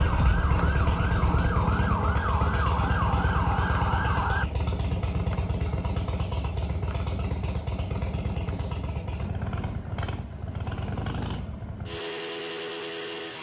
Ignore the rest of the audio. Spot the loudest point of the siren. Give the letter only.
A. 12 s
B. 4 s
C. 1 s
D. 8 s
B.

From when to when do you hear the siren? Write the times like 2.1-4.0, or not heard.
0.0-4.5.